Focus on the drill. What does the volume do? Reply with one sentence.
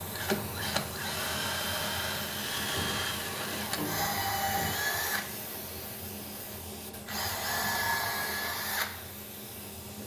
The loudness of the drill stays about the same.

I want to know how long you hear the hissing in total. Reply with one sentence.
The hissing can be heard for 10 seconds in total.